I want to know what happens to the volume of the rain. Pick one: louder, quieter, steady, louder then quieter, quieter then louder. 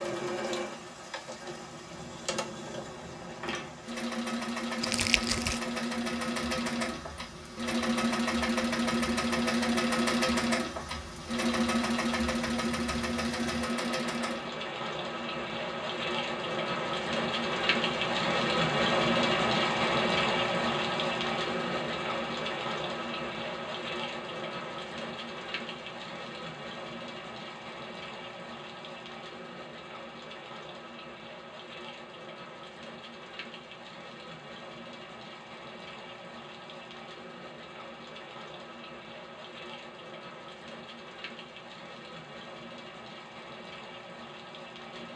louder then quieter.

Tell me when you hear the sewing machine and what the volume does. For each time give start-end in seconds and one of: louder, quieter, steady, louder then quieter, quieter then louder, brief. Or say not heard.
0.0-14.5 louder.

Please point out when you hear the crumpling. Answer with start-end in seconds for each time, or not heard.
4.8-5.6.